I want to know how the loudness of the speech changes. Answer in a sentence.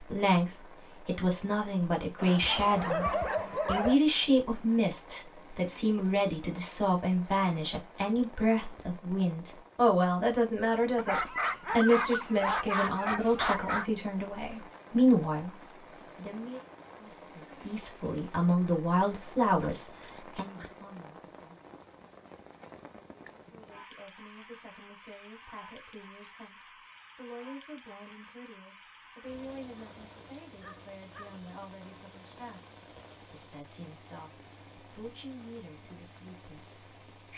The volume of the speech goes down.